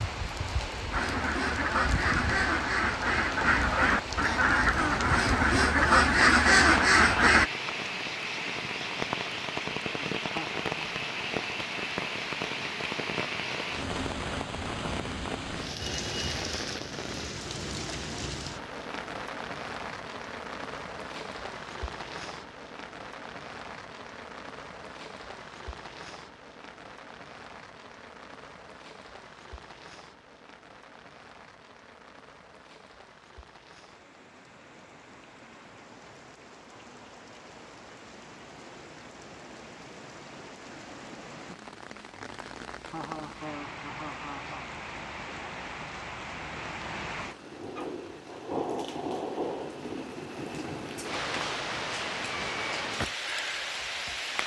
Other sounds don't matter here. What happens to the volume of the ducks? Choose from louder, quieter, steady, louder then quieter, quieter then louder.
louder.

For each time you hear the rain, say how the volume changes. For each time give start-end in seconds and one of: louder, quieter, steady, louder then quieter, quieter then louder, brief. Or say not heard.
0.0-54.4 quieter then louder.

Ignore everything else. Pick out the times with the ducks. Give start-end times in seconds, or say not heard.
0.9-7.5.